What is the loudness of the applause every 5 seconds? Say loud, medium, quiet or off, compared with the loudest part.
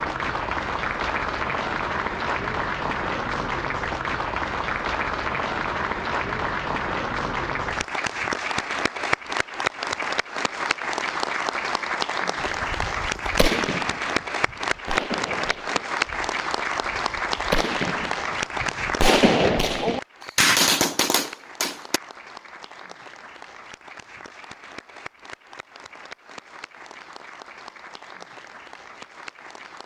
loud, loud, loud, loud, quiet, quiet.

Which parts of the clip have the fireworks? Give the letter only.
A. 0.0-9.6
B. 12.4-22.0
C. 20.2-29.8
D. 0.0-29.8
B.